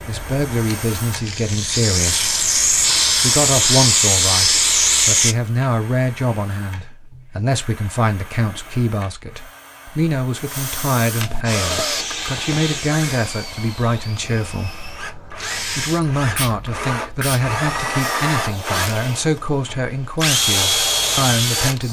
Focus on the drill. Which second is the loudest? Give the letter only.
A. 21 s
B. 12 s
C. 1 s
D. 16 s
A.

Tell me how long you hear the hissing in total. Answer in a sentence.
The hissing can be heard for 16 seconds in total.